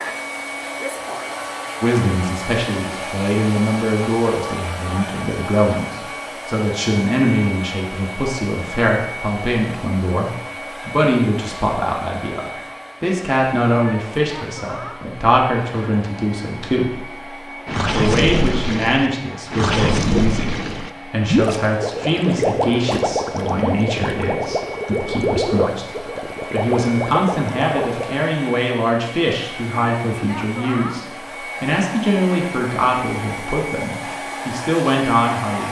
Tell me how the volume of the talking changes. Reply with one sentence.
The loudness of the talking stays about the same.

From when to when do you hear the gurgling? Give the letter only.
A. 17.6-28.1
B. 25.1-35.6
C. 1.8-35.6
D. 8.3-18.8
A.